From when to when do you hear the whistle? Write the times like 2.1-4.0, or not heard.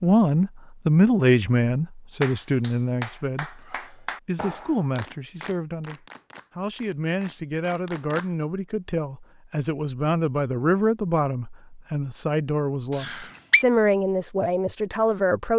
12.9-13.7.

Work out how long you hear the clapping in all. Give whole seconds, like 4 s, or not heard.
6 s.